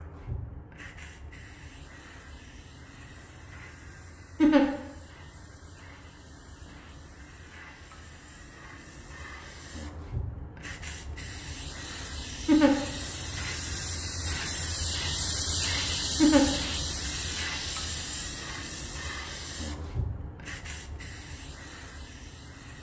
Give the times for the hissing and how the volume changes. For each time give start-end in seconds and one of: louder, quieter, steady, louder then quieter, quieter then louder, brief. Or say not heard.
0.0-22.7 louder then quieter.